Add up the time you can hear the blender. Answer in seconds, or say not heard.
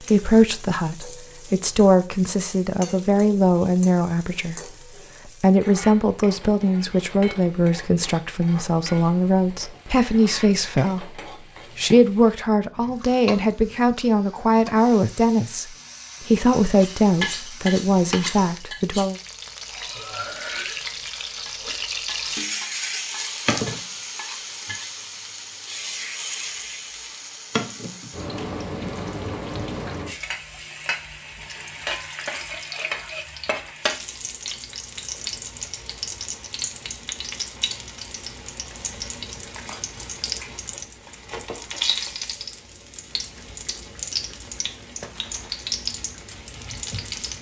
not heard.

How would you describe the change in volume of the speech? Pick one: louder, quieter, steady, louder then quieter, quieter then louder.
steady.